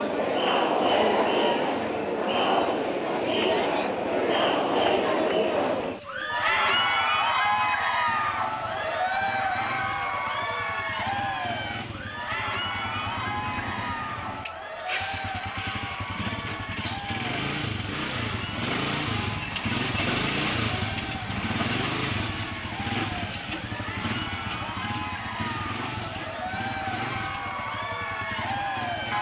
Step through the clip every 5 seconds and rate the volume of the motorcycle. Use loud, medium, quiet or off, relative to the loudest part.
quiet, quiet, medium, loud, loud, medium.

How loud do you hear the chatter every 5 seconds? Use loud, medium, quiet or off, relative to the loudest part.
loud, loud, medium, quiet, quiet, medium.